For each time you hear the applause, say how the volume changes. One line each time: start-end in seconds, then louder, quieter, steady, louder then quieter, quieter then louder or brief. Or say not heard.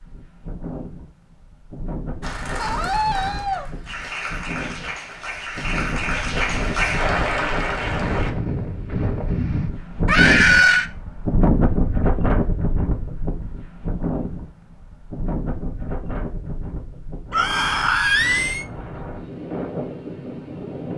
2.2-8.3 louder.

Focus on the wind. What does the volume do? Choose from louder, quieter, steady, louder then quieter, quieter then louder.
louder then quieter.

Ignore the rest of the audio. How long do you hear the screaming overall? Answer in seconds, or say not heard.
3 s.